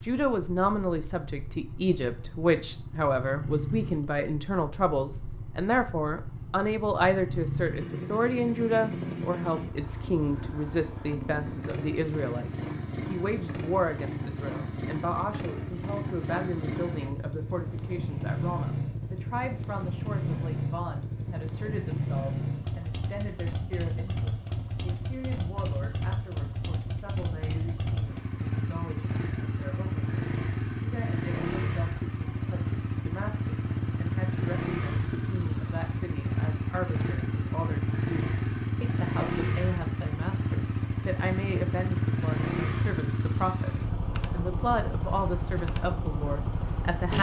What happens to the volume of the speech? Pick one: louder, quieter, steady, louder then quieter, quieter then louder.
quieter then louder.